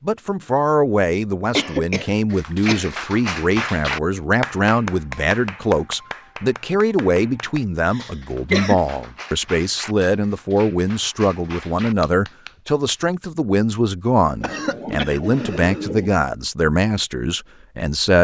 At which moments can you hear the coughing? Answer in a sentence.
The coughing can be heard from 1.6 to 3.0 s, from 7.9 to 8.8 s and from 14.4 to 16.1 s.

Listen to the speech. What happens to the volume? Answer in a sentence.
The loudness of the speech stays about the same.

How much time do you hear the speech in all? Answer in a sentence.
The speech can be heard for 18 seconds in total.